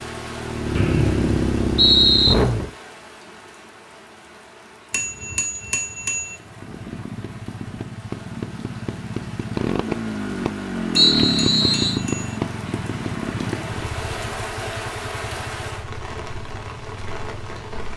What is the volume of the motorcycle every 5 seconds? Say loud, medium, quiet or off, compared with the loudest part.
loud, medium, loud, quiet.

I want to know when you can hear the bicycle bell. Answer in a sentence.
The bicycle bell can be heard from 4.9 to 6.3 s and from 10.9 to 12.4 s.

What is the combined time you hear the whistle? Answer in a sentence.
The whistle can be heard for 3 seconds in total.